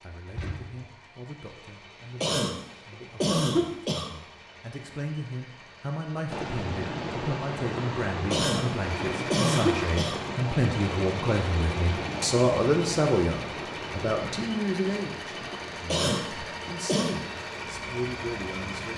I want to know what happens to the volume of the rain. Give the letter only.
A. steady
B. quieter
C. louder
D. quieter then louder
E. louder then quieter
B.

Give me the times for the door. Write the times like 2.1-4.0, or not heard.
0.3-0.9.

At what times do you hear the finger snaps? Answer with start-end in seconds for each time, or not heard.
not heard.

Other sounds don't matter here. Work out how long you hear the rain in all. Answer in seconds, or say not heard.
13 s.